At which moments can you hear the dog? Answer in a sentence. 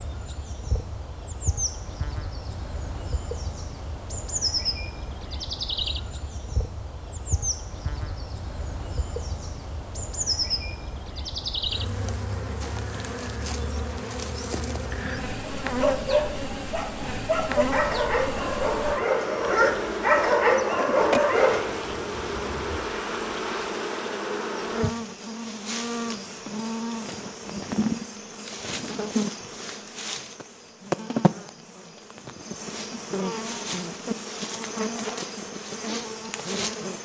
You can hear the dog from 15.8 to 21.6 s.